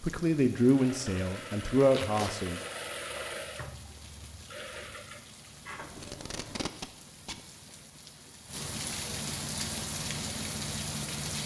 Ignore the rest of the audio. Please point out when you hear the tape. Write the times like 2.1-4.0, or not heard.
1.9-2.4, 6.0-7.5.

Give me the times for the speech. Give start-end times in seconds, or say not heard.
0.0-2.6.